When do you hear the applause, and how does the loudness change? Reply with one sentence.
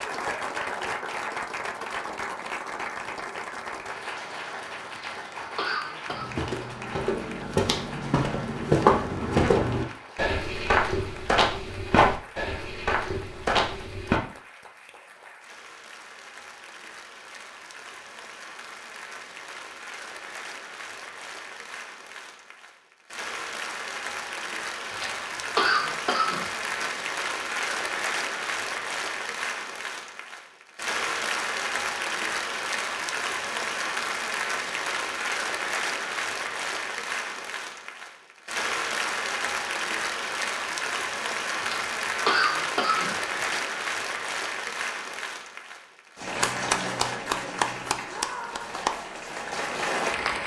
You can hear the applause from 0.0 to 50.4 s, getting quieter then louder.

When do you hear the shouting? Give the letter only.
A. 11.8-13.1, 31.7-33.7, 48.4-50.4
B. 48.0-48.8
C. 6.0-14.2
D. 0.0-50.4
B.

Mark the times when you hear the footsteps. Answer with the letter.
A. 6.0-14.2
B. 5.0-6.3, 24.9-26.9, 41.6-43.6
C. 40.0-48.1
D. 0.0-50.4
A.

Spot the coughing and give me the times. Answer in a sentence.
The coughing can be heard from 5.0 to 6.3 s, from 24.9 to 26.9 s and from 41.6 to 43.6 s.